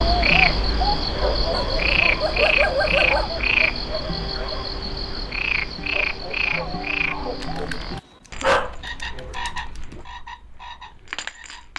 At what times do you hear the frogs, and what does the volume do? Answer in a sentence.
The frogs can be heard from 0.0 to 11.7 s, getting quieter.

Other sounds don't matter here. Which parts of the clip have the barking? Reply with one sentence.
You can hear the barking from 1.6 to 3.2 s and from 7.4 to 10.1 s.